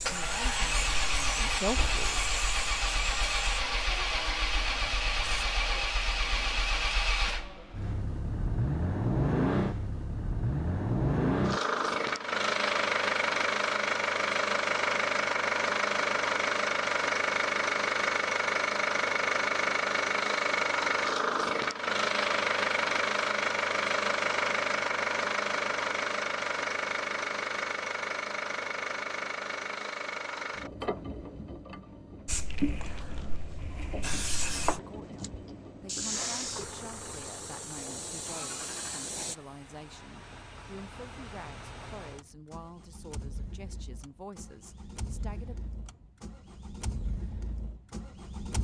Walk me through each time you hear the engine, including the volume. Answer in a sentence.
You can hear the engine from 0.0 to 48.6 s, getting quieter.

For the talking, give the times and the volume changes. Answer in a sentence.
You can hear the talking briefly from 0.1 to 2.2 s; and from 34.6 to 45.5 s, at a steady volume.